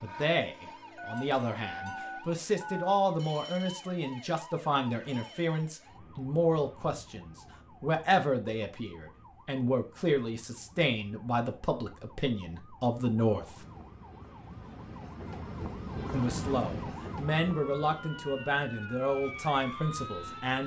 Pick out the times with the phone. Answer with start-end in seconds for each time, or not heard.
0.9-3.0.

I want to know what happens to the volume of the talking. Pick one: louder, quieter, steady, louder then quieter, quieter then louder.
steady.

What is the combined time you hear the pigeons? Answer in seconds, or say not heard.
not heard.